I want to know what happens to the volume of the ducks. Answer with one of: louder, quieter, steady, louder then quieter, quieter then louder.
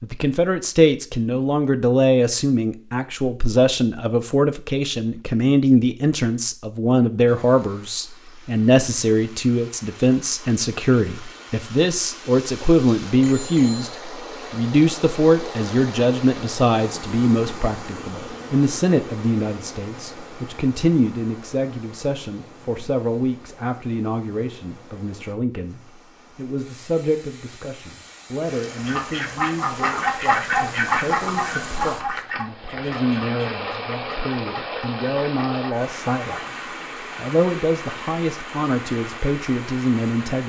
quieter.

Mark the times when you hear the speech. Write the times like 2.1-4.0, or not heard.
0.0-36.5, 37.1-40.4.